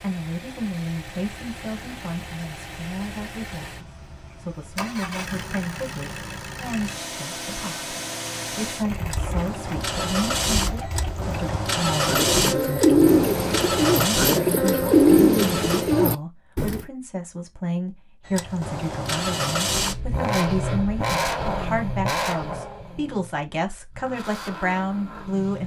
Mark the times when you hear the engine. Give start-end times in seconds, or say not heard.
0.0-15.8, 18.2-25.6.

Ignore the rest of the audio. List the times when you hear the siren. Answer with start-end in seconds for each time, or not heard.
not heard.